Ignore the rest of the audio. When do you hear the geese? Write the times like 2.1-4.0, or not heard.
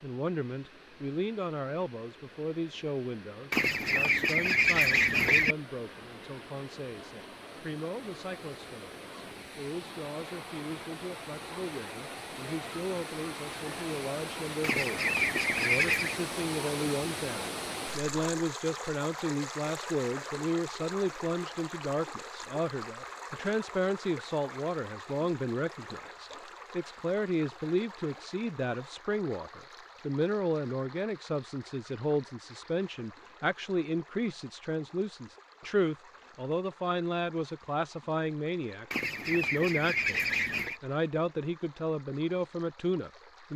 3.5-5.5, 14.6-16.2, 38.9-40.8.